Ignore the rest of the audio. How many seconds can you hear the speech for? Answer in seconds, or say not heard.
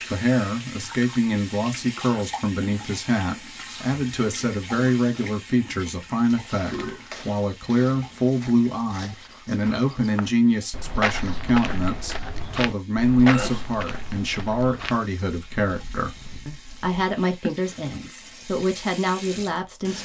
20 s.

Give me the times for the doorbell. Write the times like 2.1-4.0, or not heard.
not heard.